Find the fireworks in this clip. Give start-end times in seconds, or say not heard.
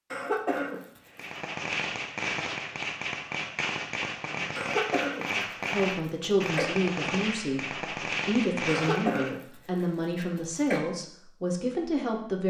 1.1-9.3.